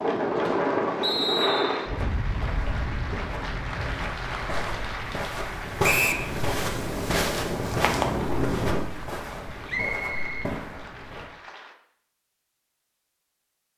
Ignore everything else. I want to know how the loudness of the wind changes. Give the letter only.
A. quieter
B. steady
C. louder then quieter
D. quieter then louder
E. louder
D.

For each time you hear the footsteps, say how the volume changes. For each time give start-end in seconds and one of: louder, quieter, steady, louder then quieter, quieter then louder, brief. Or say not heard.
1.9-11.3 louder then quieter.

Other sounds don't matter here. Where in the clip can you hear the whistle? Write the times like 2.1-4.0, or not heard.
1.0-1.9, 5.8-6.2, 9.7-10.5.